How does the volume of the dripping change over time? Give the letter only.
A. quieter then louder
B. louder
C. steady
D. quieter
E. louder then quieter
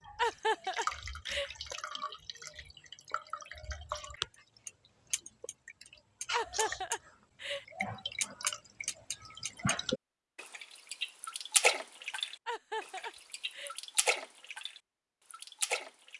E.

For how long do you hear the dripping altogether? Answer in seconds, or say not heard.
16 s.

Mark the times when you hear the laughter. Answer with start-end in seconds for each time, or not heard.
0.1-1.5, 6.3-7.7, 12.4-13.8.